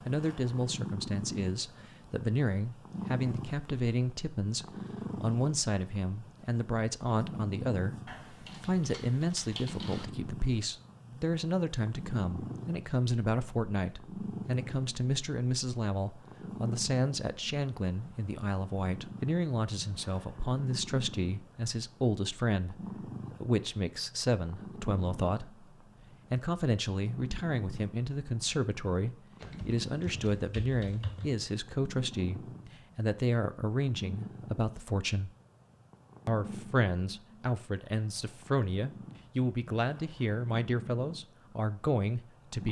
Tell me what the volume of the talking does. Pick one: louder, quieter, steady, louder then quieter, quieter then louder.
steady.